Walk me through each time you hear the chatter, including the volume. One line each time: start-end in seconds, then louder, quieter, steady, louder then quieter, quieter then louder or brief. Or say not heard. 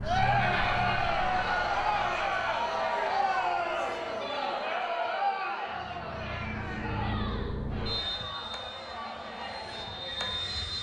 0.0-10.7 quieter.